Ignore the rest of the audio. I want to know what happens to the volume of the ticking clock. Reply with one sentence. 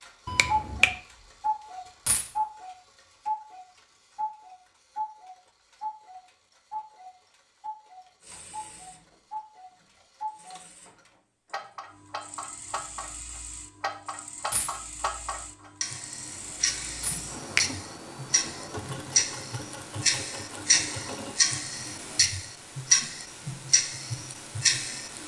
The loudness of the ticking clock goes down, then up.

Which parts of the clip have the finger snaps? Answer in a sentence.
The finger snaps can be heard from 0.2 to 0.9 s.